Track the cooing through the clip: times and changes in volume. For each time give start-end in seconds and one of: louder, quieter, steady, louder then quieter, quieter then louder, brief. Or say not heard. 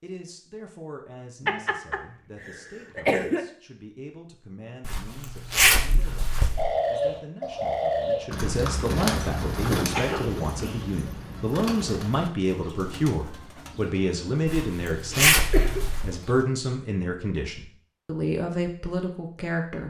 6.5-16.4 quieter.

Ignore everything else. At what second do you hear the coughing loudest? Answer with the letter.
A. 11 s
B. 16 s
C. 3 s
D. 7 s
C.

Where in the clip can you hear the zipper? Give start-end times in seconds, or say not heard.
4.8-6.7, 14.4-16.1.